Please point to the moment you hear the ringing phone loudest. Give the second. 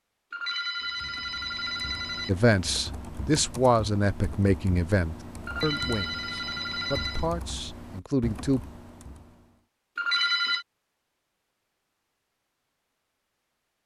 10 s.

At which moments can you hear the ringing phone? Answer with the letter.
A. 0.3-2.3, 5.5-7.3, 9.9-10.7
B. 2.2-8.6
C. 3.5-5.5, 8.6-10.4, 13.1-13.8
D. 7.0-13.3
A.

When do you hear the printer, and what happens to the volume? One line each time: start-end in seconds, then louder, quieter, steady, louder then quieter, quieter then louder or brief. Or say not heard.
not heard.